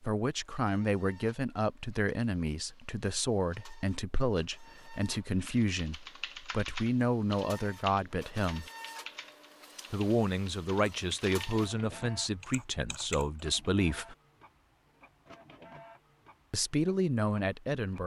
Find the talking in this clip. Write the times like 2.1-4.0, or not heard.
0.0-8.7, 9.9-14.2, 16.5-18.0.